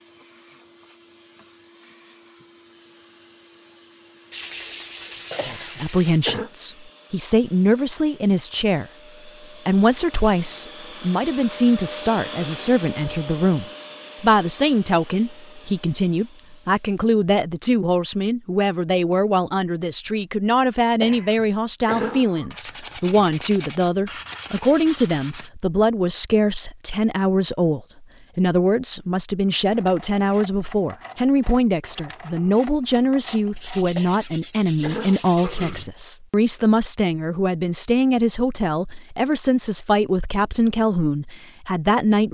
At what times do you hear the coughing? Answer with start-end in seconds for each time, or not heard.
5.3-6.5, 21.0-22.5, 34.0-36.0.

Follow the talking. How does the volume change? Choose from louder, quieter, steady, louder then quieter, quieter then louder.
steady.